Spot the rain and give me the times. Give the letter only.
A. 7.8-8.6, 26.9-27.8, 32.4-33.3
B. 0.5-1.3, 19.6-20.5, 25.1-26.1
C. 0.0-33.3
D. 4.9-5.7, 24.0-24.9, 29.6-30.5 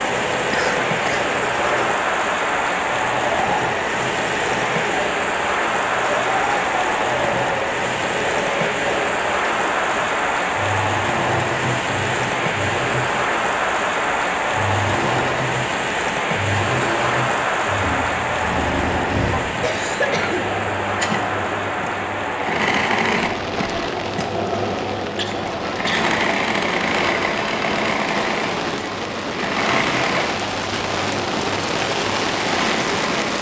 C.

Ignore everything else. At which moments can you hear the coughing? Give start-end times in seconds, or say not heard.
0.5-1.3, 19.6-20.5, 25.1-26.1.